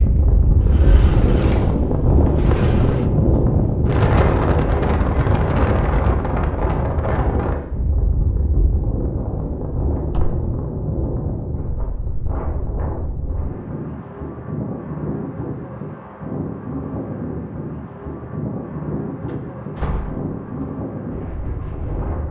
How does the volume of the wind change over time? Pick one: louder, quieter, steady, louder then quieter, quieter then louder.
quieter.